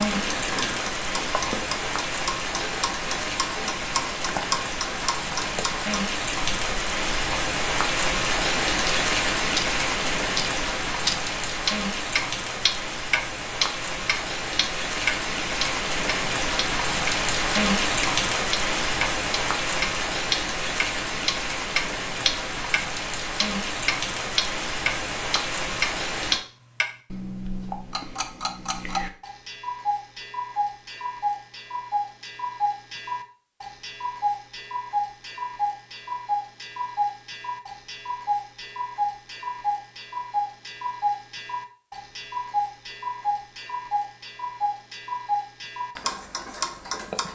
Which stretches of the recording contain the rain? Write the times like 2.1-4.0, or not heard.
0.0-26.4.